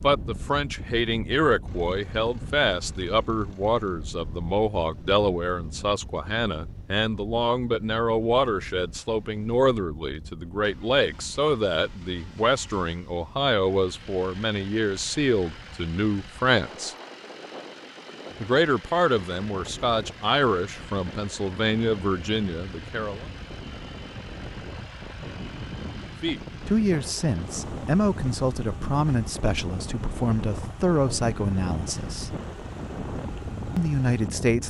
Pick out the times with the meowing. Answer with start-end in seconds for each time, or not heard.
not heard.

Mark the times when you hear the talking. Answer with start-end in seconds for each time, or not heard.
0.0-16.9, 18.4-23.2, 26.2-32.4, 33.8-34.6.